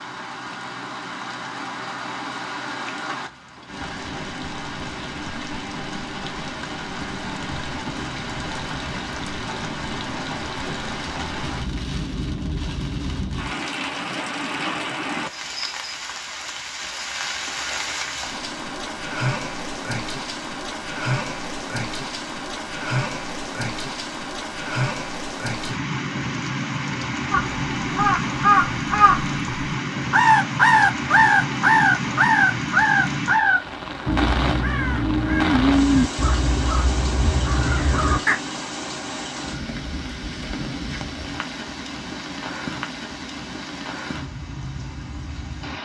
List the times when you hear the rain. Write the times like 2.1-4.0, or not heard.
0.0-45.8.